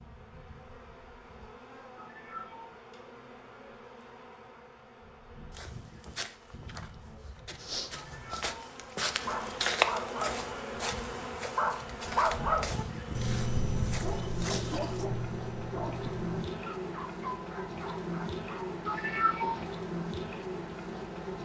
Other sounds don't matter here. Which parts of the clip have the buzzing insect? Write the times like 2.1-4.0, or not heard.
0.0-21.4.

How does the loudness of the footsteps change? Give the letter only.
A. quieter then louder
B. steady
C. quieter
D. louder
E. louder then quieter
E.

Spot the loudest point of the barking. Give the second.
12 s.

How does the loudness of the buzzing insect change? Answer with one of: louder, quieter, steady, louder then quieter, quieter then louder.
louder.